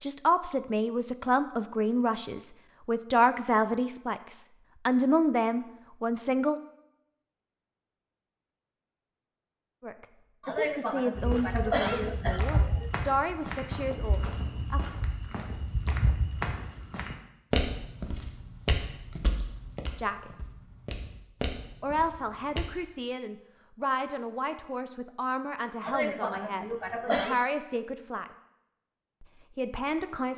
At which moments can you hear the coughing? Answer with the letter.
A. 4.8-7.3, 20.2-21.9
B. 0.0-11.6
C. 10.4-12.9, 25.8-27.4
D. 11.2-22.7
C.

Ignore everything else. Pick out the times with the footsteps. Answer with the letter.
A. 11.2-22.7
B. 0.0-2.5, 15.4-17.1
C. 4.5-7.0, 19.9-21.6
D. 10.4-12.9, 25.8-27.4
A.